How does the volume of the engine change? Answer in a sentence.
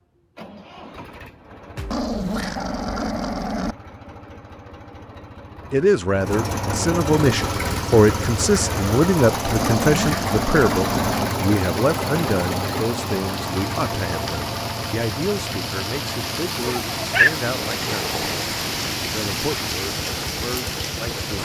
The loudness of the engine goes up, then down.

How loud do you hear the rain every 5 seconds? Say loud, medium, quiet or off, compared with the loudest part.
off, medium, medium, loud, loud.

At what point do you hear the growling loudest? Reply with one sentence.
The volume of the growling peaks at 17 seconds.